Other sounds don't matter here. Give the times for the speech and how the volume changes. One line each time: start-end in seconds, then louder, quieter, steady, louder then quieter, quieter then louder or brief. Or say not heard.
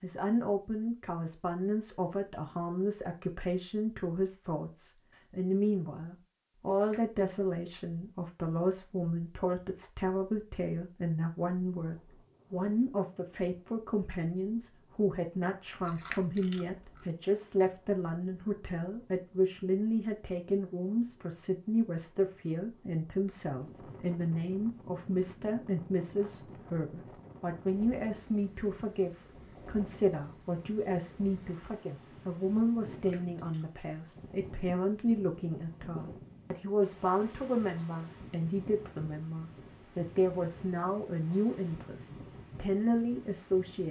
0.0-43.8 steady.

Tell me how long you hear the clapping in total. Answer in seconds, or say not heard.
not heard.